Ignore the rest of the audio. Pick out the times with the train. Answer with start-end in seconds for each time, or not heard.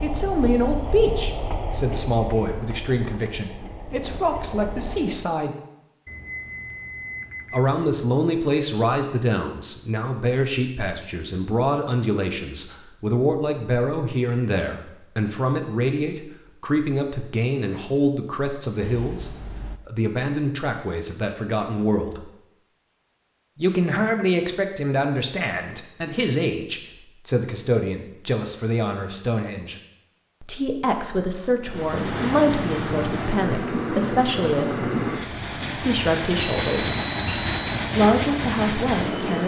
0.0-5.3, 31.6-39.4.